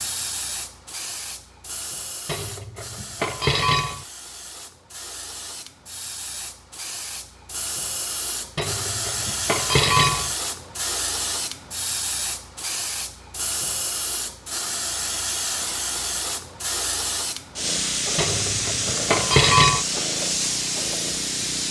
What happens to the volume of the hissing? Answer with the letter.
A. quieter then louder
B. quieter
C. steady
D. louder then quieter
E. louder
E.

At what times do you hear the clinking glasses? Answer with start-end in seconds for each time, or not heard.
2.2-4.0, 8.6-10.3, 18.1-19.9.